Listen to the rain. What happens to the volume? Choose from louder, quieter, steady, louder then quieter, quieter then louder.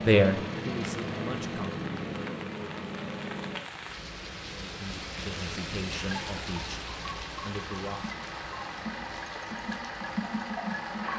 louder then quieter.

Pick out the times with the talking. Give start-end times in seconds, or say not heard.
0.0-1.9, 4.5-8.1.